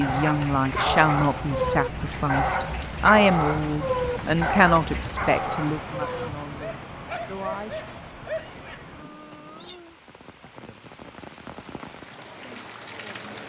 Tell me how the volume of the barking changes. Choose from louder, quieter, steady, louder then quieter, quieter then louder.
quieter.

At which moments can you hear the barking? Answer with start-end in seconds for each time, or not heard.
0.0-8.8.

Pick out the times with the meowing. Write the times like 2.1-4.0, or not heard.
8.3-9.8.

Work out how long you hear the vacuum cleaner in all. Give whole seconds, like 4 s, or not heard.
not heard.